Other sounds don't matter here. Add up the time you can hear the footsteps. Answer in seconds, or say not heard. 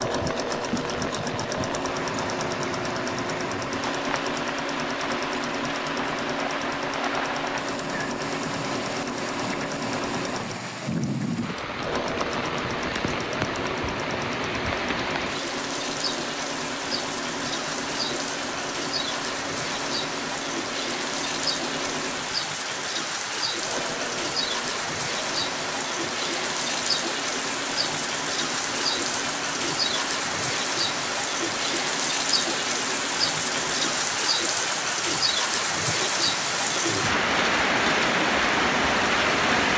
not heard.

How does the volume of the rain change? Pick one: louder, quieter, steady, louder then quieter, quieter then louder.
louder.